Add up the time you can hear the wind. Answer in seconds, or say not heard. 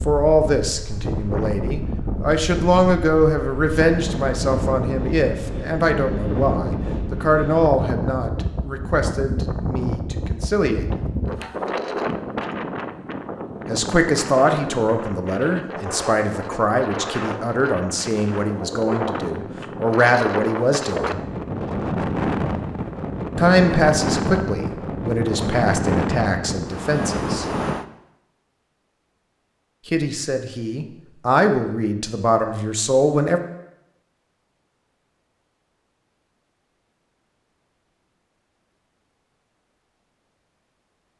28 s.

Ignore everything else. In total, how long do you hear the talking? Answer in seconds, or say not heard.
26 s.